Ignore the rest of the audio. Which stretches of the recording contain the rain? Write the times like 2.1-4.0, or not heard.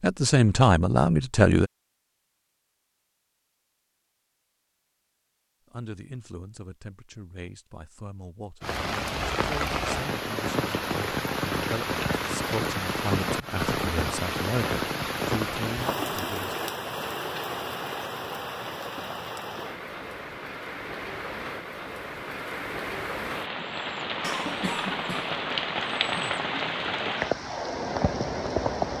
8.6-28.9.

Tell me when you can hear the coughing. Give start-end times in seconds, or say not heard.
24.2-25.4.